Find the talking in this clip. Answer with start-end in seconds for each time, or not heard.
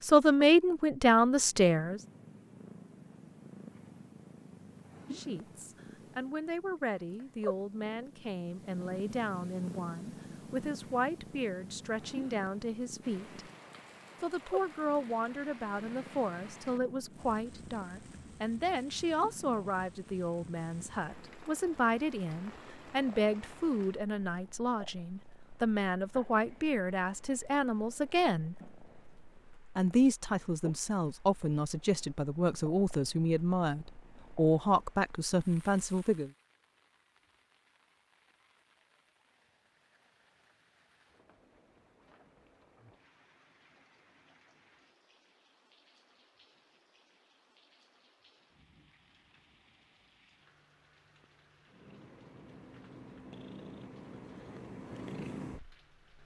0.0-2.0, 5.1-13.4, 14.2-28.6, 29.8-36.3.